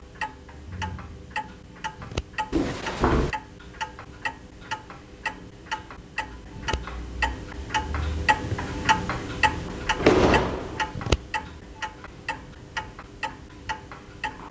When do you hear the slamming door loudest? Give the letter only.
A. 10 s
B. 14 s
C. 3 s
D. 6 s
A.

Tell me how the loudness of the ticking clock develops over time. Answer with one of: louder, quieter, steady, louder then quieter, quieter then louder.
louder then quieter.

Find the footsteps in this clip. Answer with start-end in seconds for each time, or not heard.
not heard.